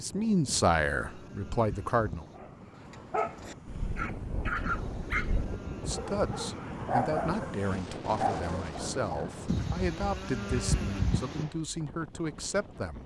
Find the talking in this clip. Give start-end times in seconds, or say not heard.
0.0-2.2, 5.8-13.0.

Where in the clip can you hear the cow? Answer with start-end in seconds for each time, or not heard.
0.5-2.4, 4.6-6.5, 9.4-11.4.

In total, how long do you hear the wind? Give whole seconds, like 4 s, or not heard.
13 s.